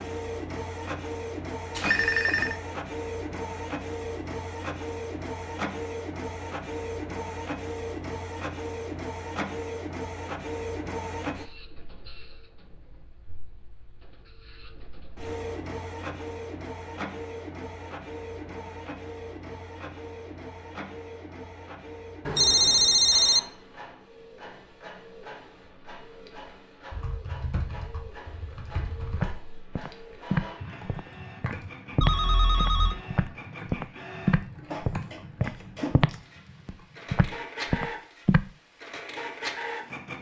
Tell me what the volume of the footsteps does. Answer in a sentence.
The loudness of the footsteps stays about the same.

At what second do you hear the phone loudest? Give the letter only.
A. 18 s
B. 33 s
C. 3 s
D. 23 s
D.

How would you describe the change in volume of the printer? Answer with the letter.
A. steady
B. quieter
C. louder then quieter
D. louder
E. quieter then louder
E.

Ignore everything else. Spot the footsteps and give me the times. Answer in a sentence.
The footsteps can be heard from 29.1 to 38.5 s.